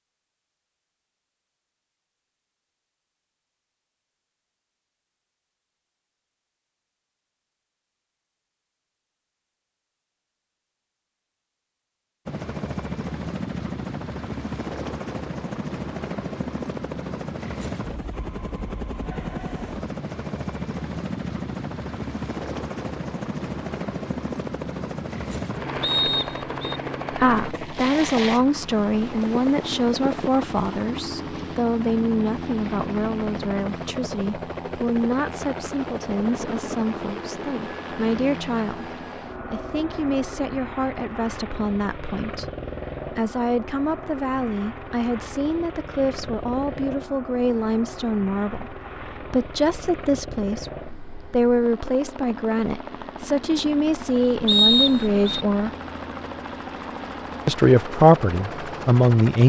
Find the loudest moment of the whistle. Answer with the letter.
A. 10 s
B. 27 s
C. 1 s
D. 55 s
D.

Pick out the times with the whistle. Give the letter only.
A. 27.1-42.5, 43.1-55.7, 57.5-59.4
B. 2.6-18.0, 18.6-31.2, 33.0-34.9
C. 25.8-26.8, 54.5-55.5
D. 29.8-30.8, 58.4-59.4
C.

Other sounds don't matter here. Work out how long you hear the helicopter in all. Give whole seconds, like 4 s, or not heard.
47 s.